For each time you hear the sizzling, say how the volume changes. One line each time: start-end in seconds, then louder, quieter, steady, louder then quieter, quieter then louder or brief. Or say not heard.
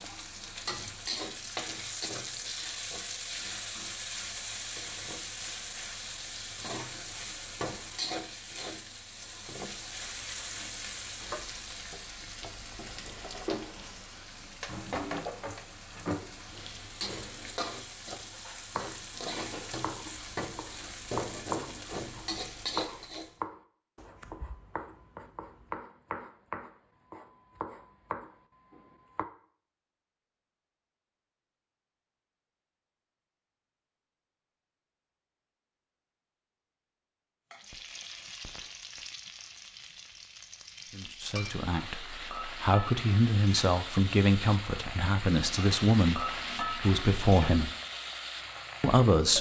0.0-23.4 steady
37.5-49.3 louder.